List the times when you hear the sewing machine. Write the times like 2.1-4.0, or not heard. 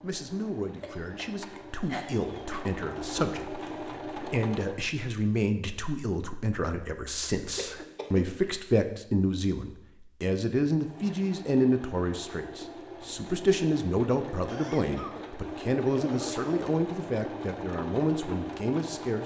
0.0-4.8, 10.8-19.2.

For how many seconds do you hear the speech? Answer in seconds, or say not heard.
19 s.